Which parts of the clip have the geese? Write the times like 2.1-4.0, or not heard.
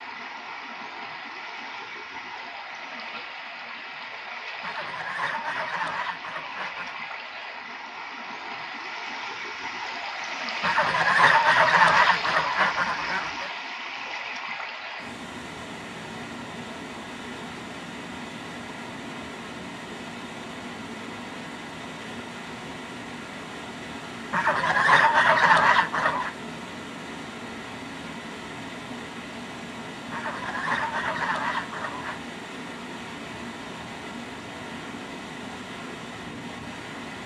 4.6-7.0, 10.6-13.5, 24.3-26.3, 30.1-32.2.